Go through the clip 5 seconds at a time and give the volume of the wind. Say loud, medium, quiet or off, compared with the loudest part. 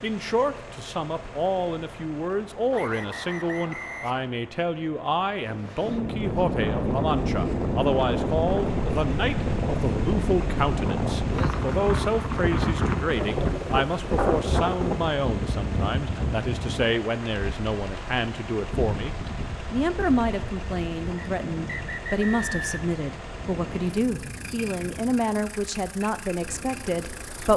off, loud, loud, medium, quiet, quiet.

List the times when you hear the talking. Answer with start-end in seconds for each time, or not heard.
0.0-27.5.